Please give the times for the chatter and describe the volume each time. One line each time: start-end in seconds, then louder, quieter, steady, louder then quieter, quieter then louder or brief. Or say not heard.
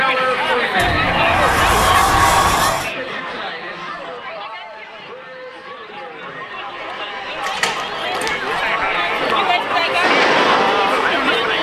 0.0-11.5 quieter then louder.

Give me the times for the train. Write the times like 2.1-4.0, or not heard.
10.0-11.5.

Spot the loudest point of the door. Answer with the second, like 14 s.
2 s.